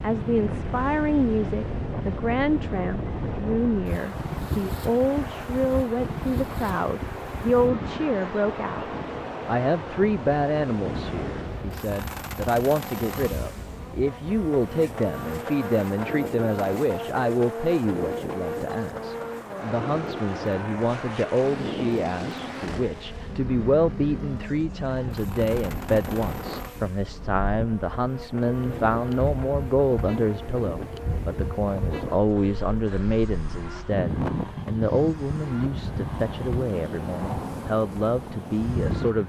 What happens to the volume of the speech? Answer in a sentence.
The loudness of the speech stays about the same.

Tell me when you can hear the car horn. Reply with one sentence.
You can't hear the car horn here.